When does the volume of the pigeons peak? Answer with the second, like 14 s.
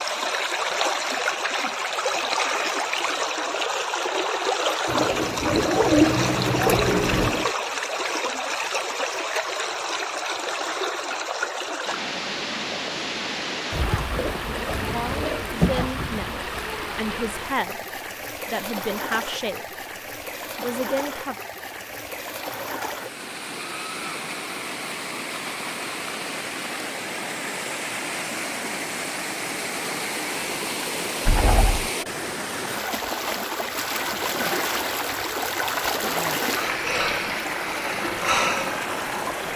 6 s.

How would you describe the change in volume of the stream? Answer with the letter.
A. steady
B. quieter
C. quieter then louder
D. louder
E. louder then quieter
C.